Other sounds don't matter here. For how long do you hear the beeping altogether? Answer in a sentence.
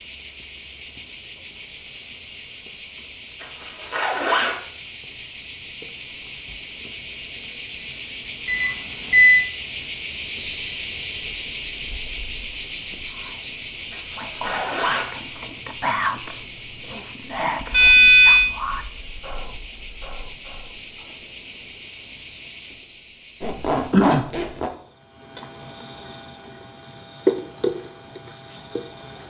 You can hear the beeping for 2 seconds altogether.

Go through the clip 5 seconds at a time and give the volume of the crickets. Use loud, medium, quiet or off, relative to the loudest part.
medium, loud, loud, medium, medium, medium.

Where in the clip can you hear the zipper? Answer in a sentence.
The zipper can be heard from 3.4 to 4.6 s, from 13.9 to 15.1 s and from 23.4 to 24.7 s.